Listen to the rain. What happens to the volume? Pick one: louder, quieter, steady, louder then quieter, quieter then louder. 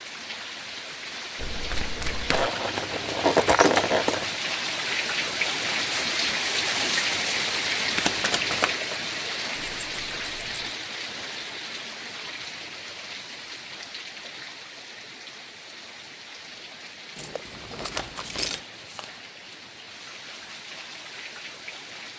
louder then quieter.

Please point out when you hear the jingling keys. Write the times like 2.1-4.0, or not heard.
2.3-4.4, 9.6-10.8, 17.1-18.6.